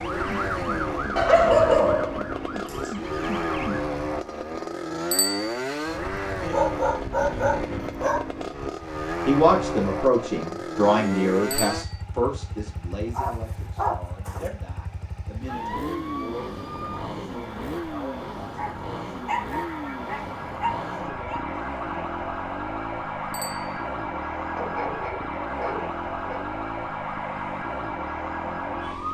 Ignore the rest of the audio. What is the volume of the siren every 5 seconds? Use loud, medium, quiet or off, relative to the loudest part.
loud, off, off, medium, loud, loud.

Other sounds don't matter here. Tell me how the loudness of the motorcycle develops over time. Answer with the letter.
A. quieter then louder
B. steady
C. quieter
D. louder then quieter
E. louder
C.